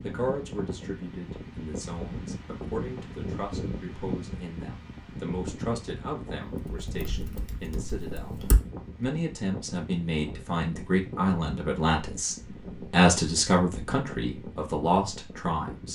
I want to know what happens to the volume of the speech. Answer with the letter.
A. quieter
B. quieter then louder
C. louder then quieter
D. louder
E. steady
D.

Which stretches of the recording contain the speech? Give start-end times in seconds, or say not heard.
0.0-8.3, 8.9-15.9.